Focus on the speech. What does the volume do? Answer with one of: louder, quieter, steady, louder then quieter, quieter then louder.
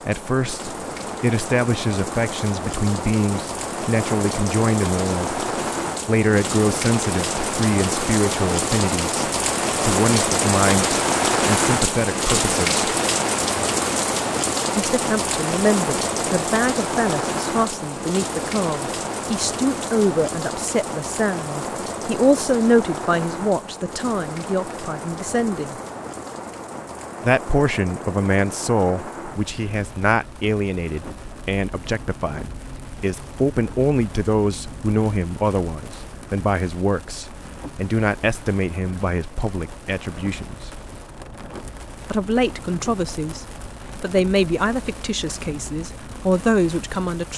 steady.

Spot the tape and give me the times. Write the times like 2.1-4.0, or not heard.
not heard.